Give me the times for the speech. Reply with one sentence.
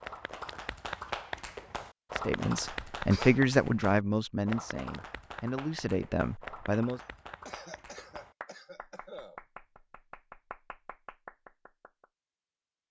You can hear the speech from 2.1 to 7.0 s.